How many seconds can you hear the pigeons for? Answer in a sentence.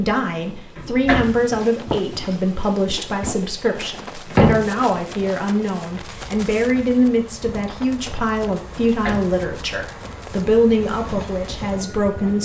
The pigeons can't be heard in this clip.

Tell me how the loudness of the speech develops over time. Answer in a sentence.
The loudness of the speech stays about the same.